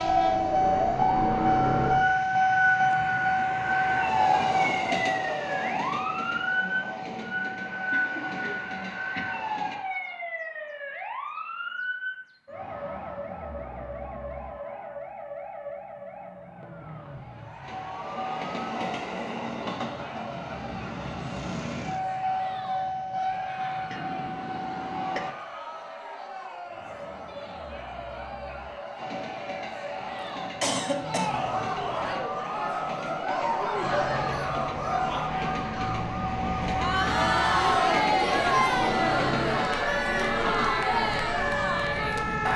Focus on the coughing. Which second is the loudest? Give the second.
31 s.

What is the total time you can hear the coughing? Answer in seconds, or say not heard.
5 s.